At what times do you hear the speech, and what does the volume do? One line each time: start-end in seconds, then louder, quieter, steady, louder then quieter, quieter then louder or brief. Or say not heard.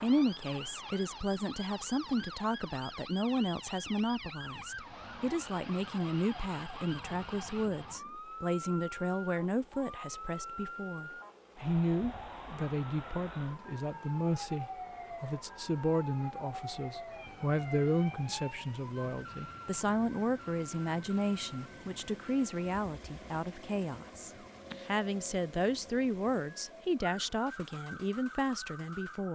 0.0-29.3 steady.